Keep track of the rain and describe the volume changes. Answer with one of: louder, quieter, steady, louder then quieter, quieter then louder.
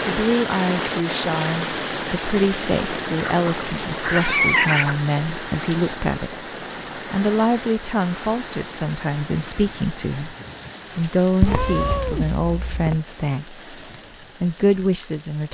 quieter.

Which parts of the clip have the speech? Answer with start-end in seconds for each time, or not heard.
0.1-10.3, 10.9-13.6, 14.4-15.4.